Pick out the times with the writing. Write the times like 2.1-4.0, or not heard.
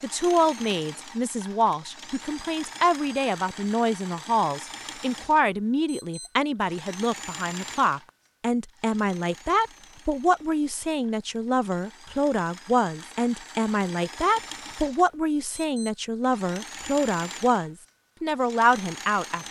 not heard.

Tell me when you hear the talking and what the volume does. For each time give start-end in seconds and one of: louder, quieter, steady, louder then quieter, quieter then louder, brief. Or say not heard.
0.0-19.4 steady.